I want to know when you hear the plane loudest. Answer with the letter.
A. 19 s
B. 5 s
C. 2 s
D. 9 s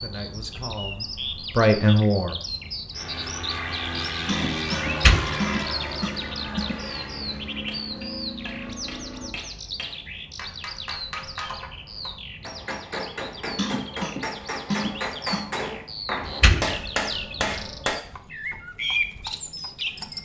B.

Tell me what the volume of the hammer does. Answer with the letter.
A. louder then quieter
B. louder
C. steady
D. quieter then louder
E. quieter
B.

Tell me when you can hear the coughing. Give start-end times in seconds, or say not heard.
4.2-6.8, 13.6-15.5.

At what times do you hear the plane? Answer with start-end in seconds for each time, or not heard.
2.9-9.3.